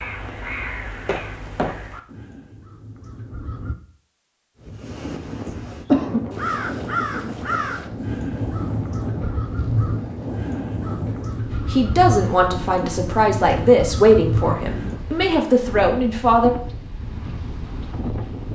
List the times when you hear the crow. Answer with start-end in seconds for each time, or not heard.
0.0-3.8, 6.3-15.0.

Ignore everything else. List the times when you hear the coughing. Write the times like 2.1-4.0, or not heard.
5.6-6.8.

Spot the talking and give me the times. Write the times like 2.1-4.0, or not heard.
11.7-16.5.